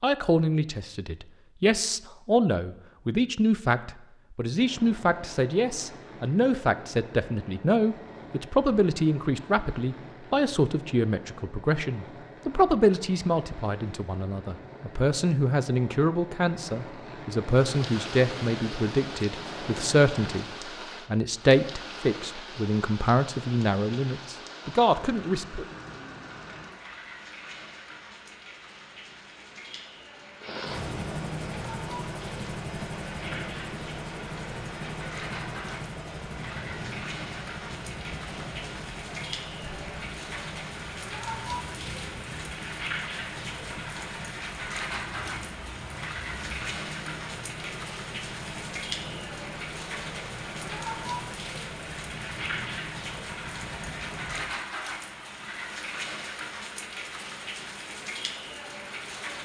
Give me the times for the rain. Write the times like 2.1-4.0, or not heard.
17.4-59.4.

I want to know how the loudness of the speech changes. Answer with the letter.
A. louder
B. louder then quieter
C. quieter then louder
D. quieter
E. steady
E.